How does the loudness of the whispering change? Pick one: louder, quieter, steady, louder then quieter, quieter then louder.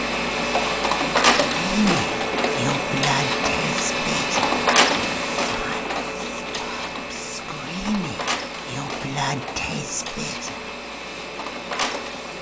quieter then louder.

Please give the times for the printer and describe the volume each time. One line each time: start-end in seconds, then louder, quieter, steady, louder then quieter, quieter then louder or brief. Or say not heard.
0.0-12.3 quieter.